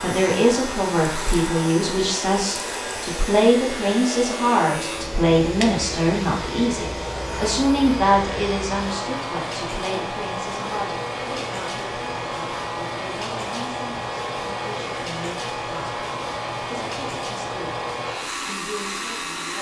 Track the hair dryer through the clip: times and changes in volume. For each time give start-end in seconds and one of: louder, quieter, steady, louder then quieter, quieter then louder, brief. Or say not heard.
0.0-19.5 steady.